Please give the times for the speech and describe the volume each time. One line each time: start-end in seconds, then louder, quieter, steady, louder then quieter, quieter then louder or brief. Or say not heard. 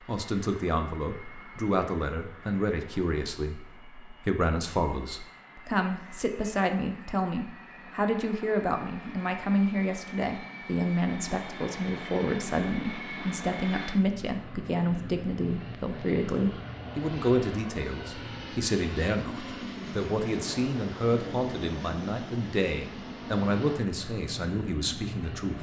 0.1-25.5 steady.